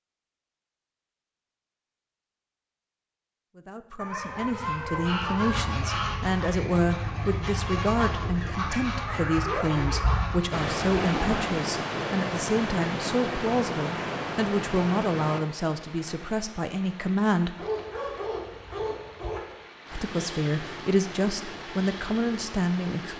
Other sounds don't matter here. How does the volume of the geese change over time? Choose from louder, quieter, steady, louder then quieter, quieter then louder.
steady.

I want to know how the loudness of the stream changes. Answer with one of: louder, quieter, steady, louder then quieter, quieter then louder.
quieter then louder.